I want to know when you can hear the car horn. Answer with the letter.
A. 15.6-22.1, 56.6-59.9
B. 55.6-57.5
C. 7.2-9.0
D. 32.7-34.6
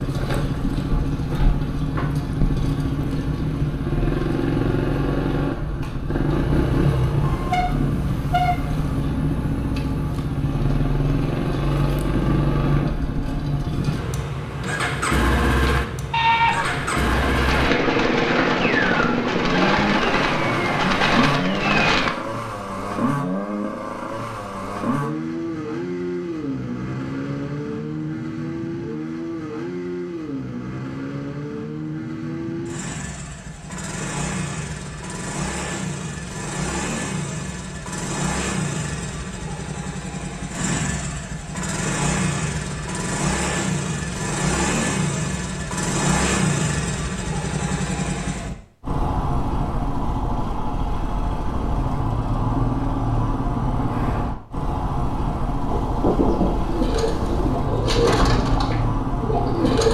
C.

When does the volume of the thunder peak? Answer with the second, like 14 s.
56 s.